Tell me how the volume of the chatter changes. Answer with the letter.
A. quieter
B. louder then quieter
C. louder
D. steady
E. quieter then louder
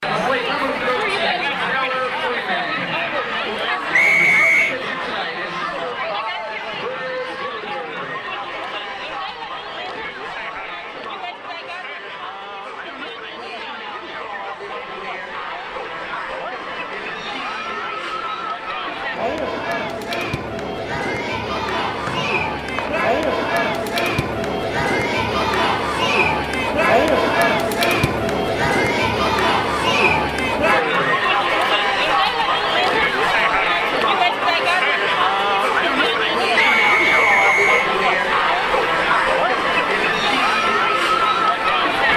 E.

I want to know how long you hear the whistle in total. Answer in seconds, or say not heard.
3 s.